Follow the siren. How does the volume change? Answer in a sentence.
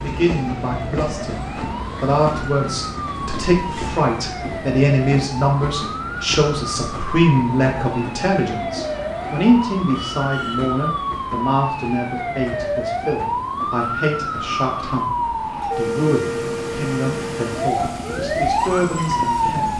The volume of the siren goes up.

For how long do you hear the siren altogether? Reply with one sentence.
You can hear the siren for 20 seconds altogether.